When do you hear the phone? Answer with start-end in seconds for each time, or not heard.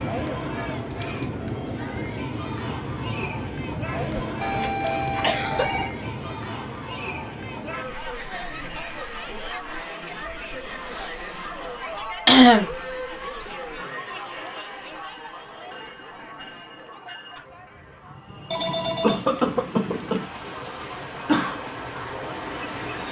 4.4-6.0, 18.5-20.2.